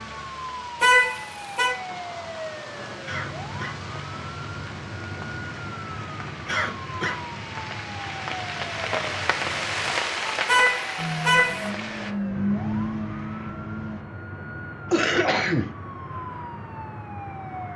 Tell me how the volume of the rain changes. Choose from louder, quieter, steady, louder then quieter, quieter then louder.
louder.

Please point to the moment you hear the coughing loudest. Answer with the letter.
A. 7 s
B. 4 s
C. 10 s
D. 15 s
D.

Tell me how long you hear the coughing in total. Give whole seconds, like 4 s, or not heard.
2 s.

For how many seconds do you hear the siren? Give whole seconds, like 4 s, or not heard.
18 s.